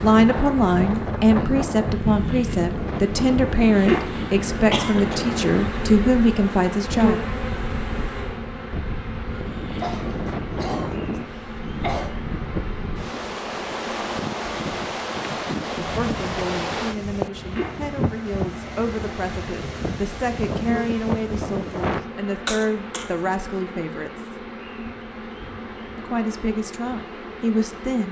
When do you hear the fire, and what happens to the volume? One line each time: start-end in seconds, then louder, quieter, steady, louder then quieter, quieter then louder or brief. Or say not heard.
not heard.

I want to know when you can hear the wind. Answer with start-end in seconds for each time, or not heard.
0.0-22.1.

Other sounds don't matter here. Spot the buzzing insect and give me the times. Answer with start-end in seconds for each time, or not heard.
0.0-28.0.